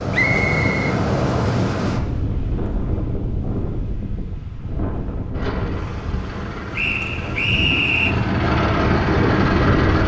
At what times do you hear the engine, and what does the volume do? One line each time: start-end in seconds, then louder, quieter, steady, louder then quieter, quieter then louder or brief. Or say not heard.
5.3-10.0 louder.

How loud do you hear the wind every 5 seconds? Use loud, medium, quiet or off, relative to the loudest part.
loud, medium.